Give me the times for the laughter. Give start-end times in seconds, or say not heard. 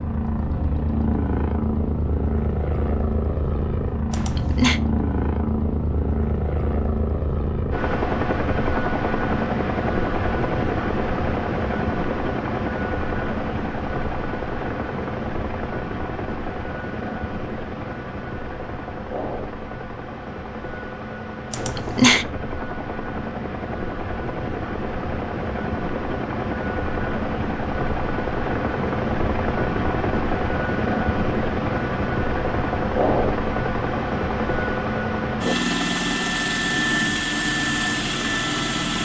4.1-4.8, 21.5-22.2.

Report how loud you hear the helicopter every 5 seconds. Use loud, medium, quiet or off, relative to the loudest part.
loud, loud, loud, medium, medium, loud, loud, loud.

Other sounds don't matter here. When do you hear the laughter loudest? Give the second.
22 s.